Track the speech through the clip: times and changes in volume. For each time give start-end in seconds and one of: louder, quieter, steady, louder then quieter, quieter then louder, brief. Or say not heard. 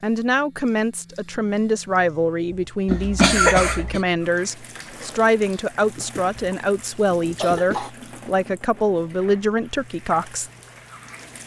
0.0-10.5 steady.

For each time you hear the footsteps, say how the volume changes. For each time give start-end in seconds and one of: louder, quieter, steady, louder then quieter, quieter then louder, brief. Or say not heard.
not heard.